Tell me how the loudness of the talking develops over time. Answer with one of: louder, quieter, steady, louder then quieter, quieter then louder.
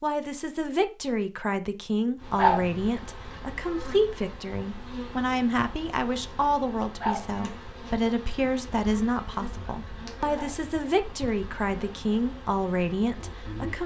steady.